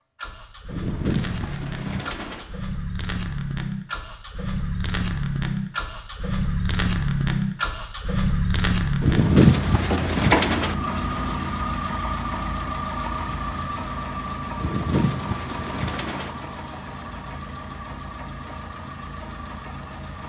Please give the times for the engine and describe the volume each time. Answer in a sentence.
You can hear the engine from 0.0 to 20.2 s, getting louder then quieter.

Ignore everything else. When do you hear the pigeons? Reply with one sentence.
You can hear the pigeons from 0.7 to 2.5 s, from 9.0 to 10.8 s and from 14.6 to 16.3 s.